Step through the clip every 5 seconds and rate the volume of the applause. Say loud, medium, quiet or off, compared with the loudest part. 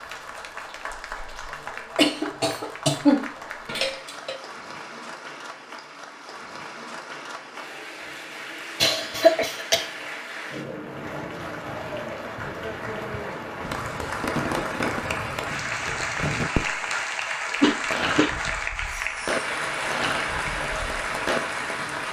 medium, medium, loud, loud, loud.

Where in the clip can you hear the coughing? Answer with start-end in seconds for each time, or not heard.
1.9-4.3, 8.8-9.8, 17.4-18.3.